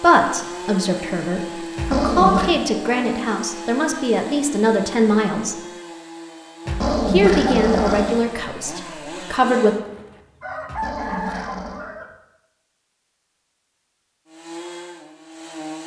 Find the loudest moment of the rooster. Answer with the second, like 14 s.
11 s.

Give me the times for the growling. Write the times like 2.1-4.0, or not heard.
1.8-2.5, 6.7-8.2, 10.7-11.8.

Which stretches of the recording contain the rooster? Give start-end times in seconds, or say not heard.
9.7-12.1.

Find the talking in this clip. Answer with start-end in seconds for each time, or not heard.
0.0-5.6, 7.0-9.8.